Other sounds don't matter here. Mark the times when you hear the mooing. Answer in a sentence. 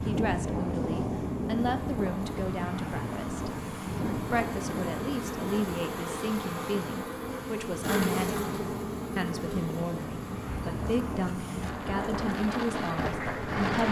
The mooing can't be heard in this clip.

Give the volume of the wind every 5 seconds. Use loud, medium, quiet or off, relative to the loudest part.
loud, medium, loud.